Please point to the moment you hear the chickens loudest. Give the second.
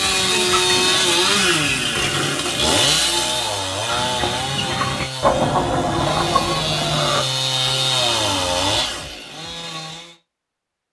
5 s.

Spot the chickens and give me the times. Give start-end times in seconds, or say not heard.
0.0-2.4, 3.9-7.8.